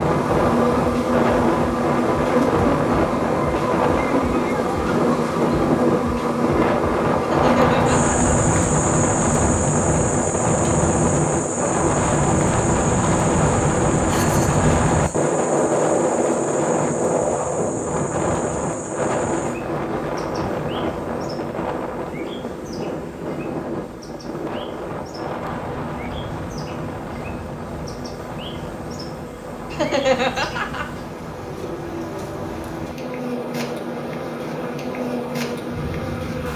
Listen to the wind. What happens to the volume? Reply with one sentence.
The volume of the wind goes down.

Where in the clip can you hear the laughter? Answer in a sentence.
The laughter can be heard from 7.2 to 8.3 s, from 14.1 to 15.3 s and from 29.7 to 30.9 s.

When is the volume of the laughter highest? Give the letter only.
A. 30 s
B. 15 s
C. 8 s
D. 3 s
A.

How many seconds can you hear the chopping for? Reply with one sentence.
The chopping can't be heard in this clip.